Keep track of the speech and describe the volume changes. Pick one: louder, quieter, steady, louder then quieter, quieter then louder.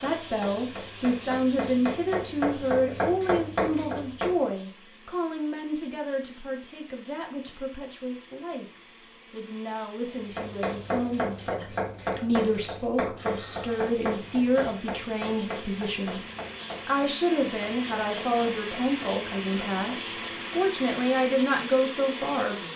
quieter then louder.